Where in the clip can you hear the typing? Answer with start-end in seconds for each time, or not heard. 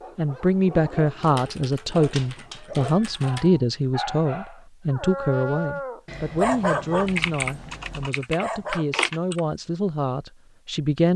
1.2-3.5, 7.0-9.4.